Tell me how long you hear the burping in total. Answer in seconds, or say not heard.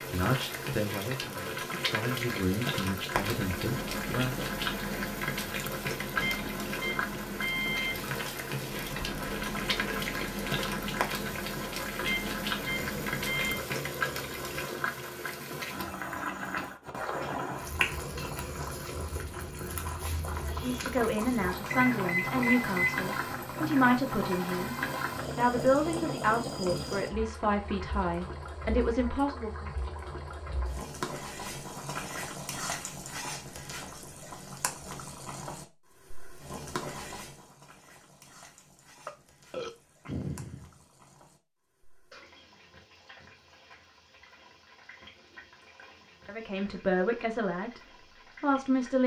5 s.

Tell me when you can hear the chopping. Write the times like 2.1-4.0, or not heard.
not heard.